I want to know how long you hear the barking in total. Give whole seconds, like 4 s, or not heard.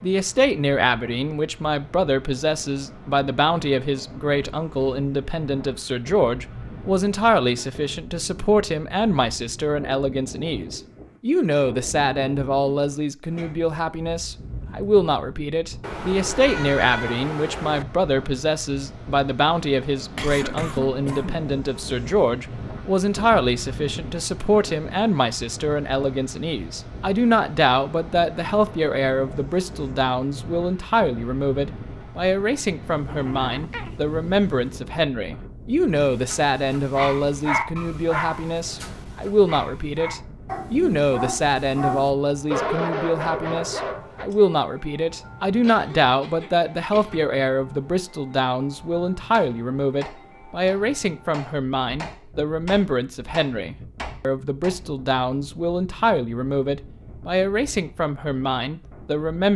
8 s.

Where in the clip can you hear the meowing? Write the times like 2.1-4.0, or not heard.
15.8-17.9, 32.8-34.9.